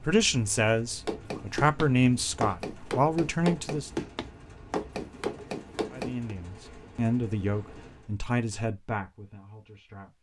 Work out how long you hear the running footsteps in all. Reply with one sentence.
The running footsteps can be heard for 5 seconds in total.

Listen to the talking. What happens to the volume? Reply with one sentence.
The volume of the talking goes down.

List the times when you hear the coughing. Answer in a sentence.
You can't hear the coughing here.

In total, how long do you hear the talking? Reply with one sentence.
The talking can be heard for 8 seconds in total.